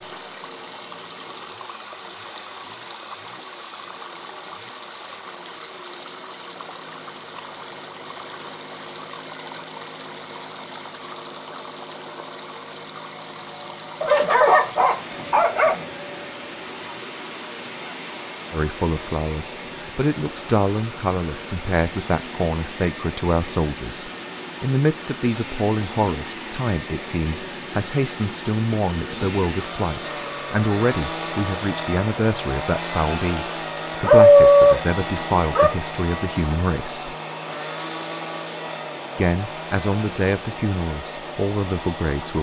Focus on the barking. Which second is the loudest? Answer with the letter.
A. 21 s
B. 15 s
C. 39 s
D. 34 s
D.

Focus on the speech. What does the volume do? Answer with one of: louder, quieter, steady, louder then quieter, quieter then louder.
steady.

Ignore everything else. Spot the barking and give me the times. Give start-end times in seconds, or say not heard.
14.0-15.8, 34.0-35.7.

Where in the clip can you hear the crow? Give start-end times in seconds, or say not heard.
not heard.